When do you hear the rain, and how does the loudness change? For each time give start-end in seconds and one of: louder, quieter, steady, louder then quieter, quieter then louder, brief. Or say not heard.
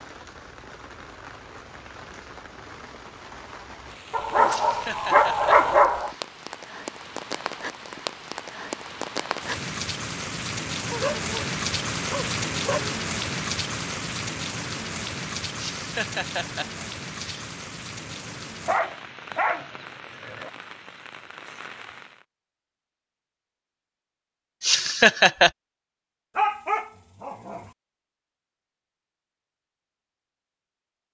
0.0-22.2 louder then quieter.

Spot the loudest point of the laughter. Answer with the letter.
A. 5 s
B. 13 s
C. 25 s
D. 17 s
C.